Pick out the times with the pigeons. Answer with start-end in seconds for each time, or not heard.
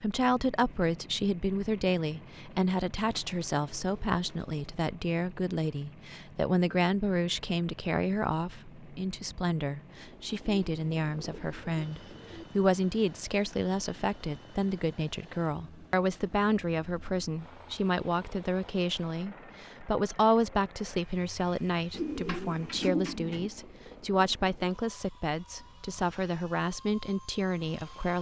3.0-4.5, 10.4-12.4, 21.9-23.5.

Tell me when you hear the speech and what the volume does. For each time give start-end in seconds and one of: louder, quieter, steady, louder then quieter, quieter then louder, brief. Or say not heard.
0.0-28.1 steady.